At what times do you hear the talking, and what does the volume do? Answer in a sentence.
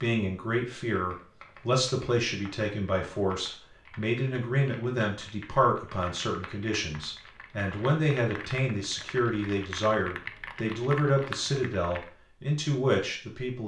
You can hear the talking from 0.0 to 13.6 s, at a steady volume.